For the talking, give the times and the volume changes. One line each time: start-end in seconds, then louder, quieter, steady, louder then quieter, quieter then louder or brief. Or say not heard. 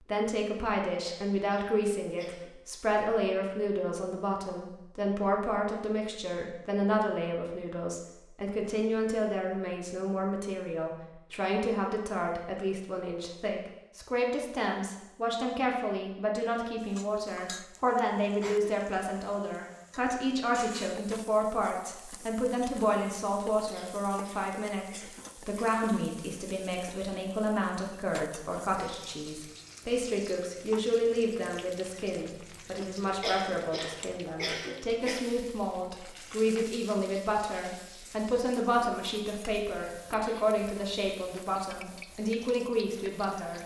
0.0-43.6 steady.